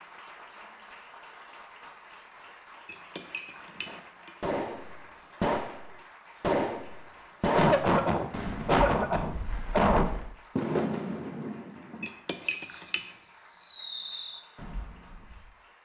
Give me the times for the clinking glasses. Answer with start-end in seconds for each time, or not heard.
2.9-4.3, 12.0-13.1.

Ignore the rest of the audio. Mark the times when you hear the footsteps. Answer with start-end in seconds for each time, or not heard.
not heard.